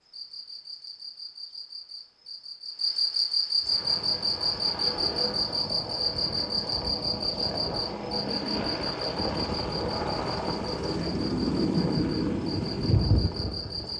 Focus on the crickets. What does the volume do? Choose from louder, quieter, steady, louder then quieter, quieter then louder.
louder then quieter.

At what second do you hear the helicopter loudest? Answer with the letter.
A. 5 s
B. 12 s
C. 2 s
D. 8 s
B.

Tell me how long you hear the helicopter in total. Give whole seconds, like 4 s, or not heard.
10 s.